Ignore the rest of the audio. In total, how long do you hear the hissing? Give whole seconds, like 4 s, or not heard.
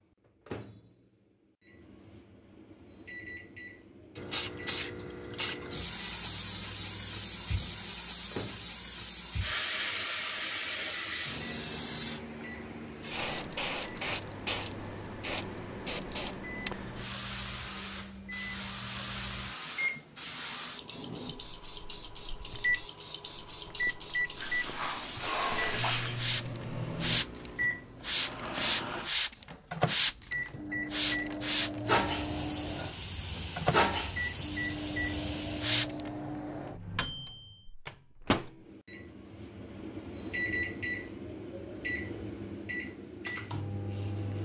32 s.